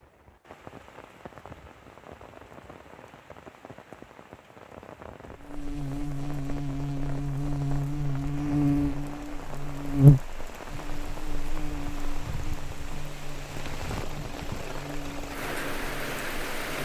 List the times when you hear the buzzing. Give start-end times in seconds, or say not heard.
5.5-16.8.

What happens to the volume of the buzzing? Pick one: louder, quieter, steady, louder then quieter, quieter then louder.
louder then quieter.